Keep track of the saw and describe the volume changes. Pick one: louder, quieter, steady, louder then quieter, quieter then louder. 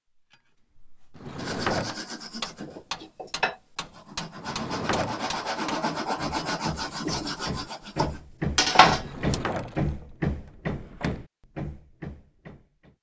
louder.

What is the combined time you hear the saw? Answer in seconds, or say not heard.
8 s.